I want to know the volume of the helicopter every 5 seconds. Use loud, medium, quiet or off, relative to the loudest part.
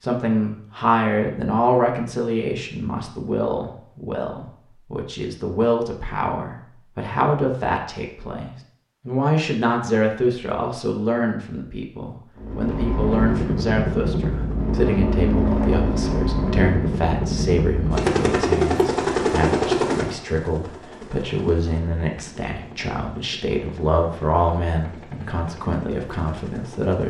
off, off, loud, loud, quiet, quiet.